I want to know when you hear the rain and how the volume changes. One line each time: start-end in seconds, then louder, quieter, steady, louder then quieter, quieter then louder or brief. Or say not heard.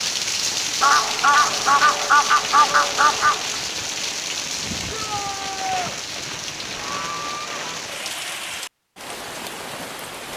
0.0-10.3 quieter.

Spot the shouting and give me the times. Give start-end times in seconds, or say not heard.
4.9-6.0.